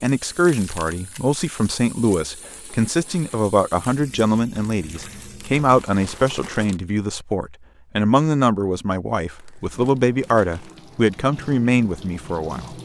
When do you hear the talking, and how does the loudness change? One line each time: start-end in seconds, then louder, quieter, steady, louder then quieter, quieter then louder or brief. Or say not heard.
0.0-12.7 steady.